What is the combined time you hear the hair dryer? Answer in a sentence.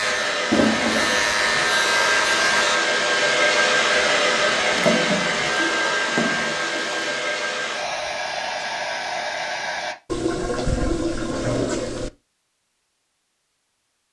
You can hear the hair dryer for 10 seconds altogether.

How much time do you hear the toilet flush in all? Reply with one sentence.
The toilet flush can be heard for 5 seconds in total.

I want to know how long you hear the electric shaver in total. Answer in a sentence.
You can hear the electric shaver for 3 seconds altogether.